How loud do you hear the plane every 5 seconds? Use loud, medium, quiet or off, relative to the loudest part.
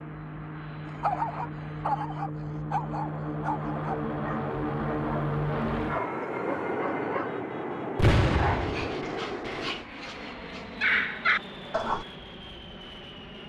loud, loud, medium.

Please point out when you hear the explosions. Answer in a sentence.
You can hear the explosions from 8.0 to 8.9 s.